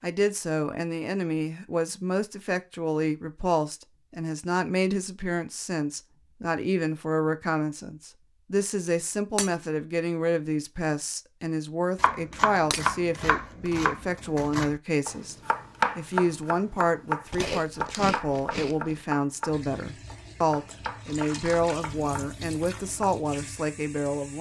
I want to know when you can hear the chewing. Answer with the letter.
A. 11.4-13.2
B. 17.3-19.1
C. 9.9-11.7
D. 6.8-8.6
B.